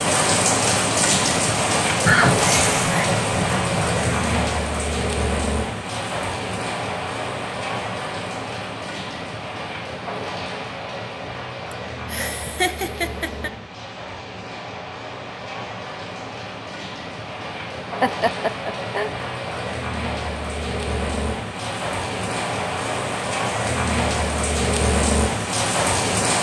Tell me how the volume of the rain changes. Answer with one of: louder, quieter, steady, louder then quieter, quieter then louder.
quieter then louder.